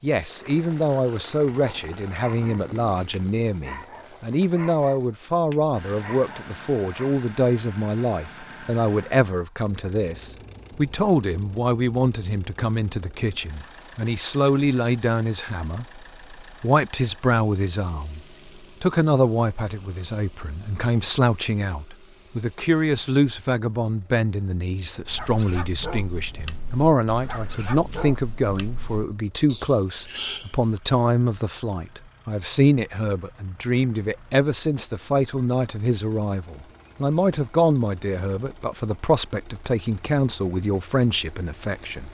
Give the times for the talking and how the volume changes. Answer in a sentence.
The talking can be heard from 0.0 to 42.1 s, at a steady volume.